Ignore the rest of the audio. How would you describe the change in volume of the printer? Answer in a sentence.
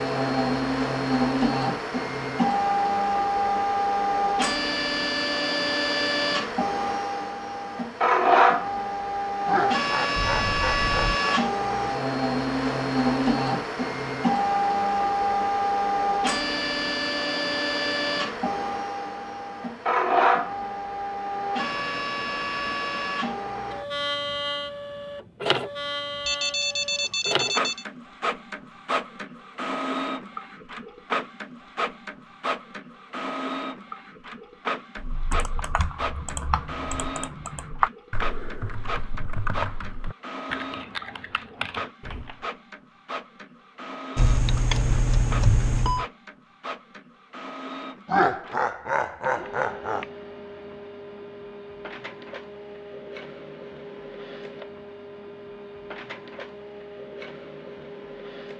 The volume of the printer goes down.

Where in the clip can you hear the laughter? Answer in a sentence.
You can hear the laughter from 9.4 to 11.4 s and from 48.0 to 50.0 s.